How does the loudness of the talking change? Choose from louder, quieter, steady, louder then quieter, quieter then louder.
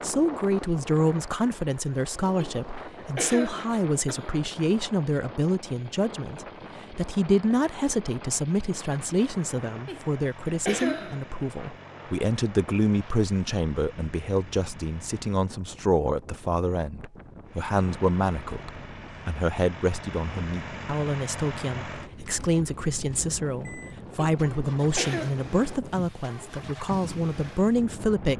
steady.